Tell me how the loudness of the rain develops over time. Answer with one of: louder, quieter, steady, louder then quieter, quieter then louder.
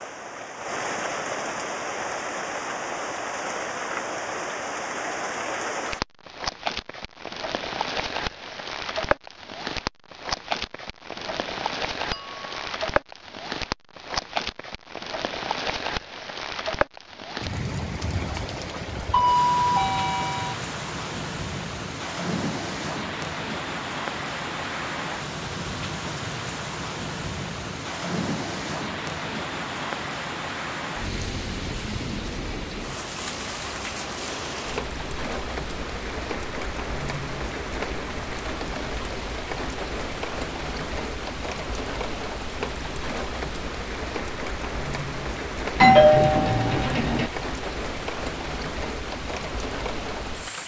steady.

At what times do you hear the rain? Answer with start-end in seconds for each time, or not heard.
0.0-50.6.